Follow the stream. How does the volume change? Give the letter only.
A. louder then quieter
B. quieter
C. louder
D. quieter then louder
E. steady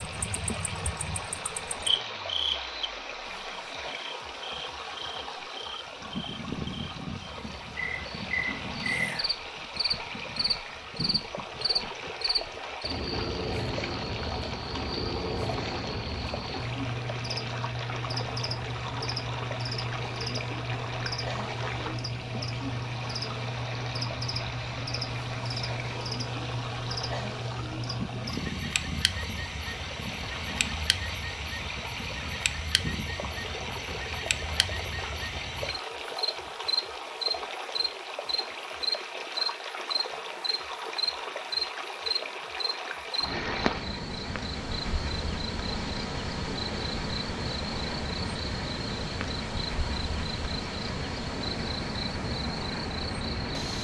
E.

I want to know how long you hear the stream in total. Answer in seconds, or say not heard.
54 s.